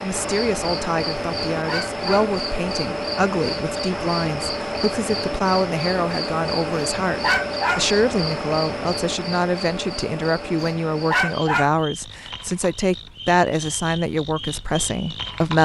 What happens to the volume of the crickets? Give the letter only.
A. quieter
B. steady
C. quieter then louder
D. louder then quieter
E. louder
A.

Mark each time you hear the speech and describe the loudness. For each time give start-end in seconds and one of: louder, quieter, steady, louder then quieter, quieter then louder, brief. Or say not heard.
0.0-15.6 steady.